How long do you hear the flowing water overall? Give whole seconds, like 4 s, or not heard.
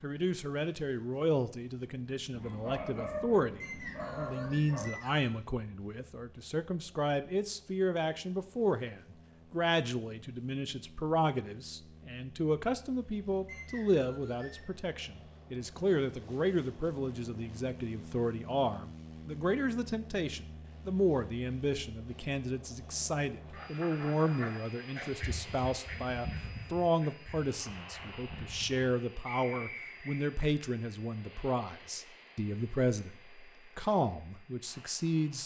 not heard.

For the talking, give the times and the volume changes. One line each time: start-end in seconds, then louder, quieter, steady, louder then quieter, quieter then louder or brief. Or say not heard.
0.0-35.4 steady.